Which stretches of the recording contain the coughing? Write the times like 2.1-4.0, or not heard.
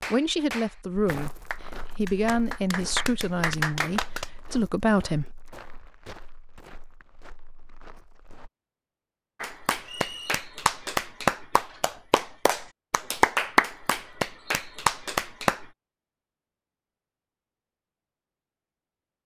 not heard.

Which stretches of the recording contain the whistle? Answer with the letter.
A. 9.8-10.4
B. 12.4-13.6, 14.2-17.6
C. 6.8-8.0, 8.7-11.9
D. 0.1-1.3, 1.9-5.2
A.